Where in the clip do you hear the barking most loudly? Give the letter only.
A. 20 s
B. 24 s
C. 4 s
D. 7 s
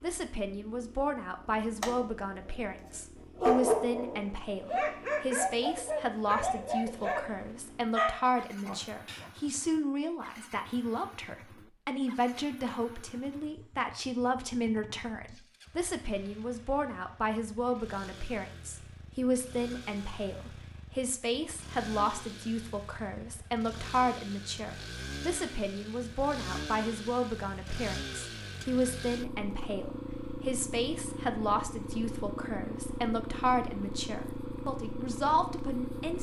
C.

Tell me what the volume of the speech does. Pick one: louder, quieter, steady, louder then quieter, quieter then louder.
steady.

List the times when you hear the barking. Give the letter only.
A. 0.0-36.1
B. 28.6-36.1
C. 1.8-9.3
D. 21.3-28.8
C.